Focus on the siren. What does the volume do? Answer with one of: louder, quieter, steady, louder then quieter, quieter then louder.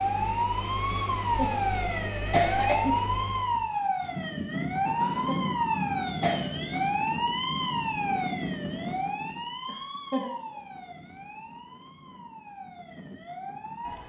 quieter.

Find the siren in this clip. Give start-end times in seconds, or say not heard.
0.0-14.0.